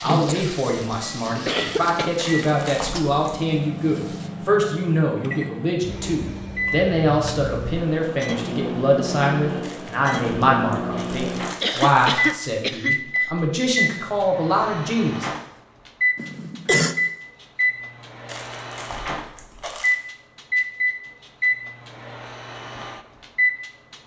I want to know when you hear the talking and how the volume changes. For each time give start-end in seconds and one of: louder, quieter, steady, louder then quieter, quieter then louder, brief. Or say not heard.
0.0-15.3 steady.